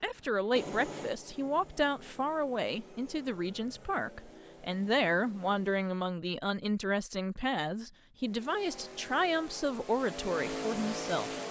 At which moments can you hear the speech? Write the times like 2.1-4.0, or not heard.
0.0-11.3.